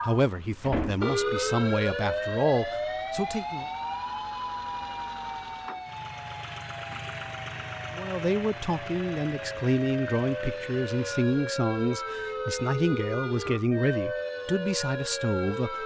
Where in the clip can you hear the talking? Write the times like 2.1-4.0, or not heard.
0.0-3.6, 7.9-15.8.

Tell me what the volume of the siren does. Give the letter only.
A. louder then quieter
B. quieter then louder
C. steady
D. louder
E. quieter
B.